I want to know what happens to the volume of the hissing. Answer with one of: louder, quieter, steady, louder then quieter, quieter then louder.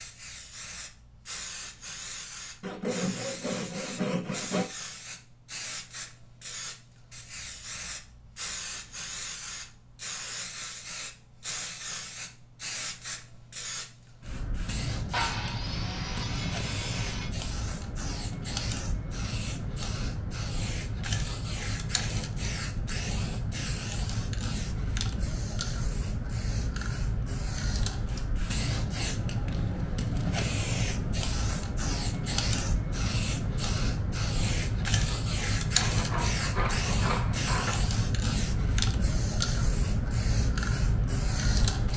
louder.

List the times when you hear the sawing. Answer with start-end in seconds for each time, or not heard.
2.6-4.7, 15.1-17.3, 35.8-37.8.